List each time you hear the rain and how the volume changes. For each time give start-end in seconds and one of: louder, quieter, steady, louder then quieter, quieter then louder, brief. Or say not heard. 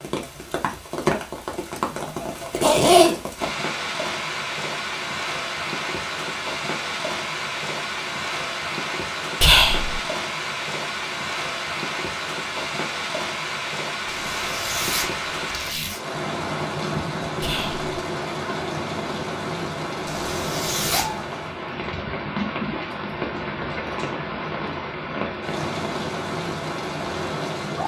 0.0-27.8 steady.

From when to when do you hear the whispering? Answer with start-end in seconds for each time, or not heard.
9.4-10.0, 17.4-17.9.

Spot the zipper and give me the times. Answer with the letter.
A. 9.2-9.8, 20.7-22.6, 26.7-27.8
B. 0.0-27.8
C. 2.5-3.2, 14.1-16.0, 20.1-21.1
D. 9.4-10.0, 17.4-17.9
C.